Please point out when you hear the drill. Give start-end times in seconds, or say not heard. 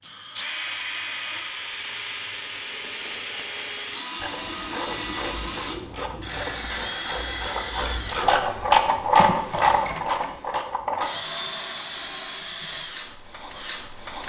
0.0-14.2.